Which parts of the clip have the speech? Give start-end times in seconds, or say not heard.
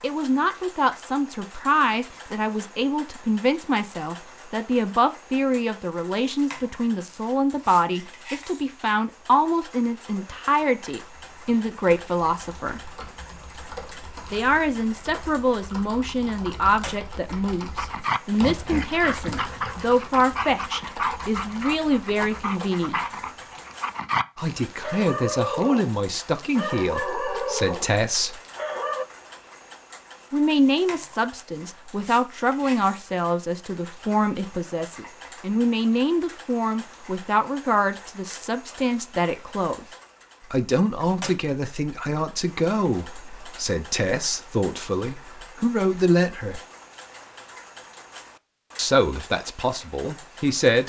0.0-12.9, 14.3-23.0, 24.4-28.4, 30.3-39.9, 40.5-46.6, 48.8-50.8.